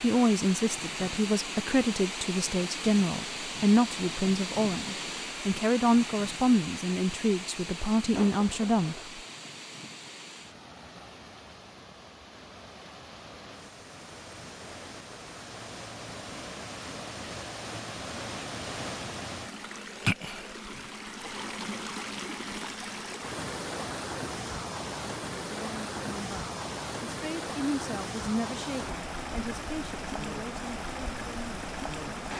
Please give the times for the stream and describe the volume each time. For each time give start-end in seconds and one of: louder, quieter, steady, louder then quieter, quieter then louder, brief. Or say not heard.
0.0-32.3 quieter then louder.